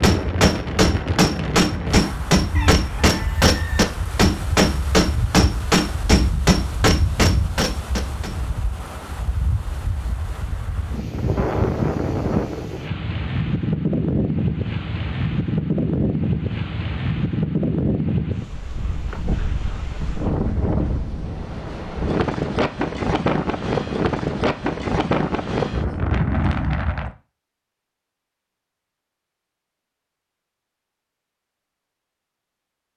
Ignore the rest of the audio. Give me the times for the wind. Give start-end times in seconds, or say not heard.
0.0-27.1.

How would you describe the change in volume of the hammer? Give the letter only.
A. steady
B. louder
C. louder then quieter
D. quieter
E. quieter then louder
A.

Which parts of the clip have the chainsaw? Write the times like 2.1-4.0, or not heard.
not heard.